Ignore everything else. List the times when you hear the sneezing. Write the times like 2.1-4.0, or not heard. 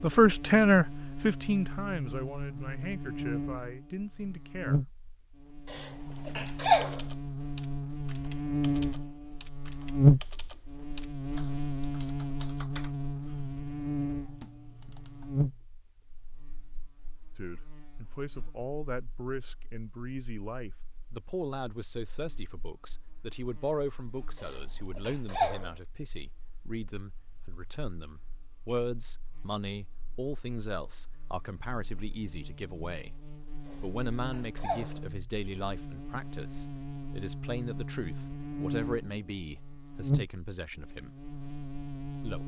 5.7-7.0, 24.4-25.7, 33.6-35.0.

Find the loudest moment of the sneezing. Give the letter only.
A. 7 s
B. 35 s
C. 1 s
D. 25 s
A.